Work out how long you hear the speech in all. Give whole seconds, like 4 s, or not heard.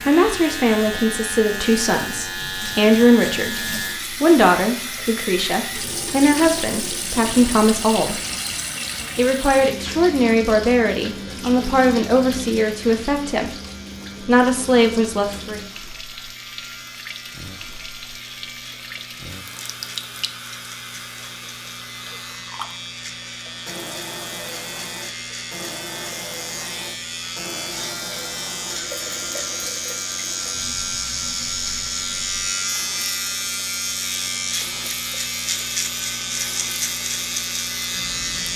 14 s.